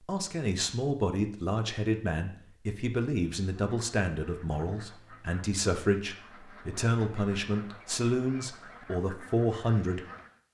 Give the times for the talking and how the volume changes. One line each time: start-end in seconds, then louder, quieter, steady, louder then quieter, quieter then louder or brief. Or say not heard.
0.1-10.1 steady.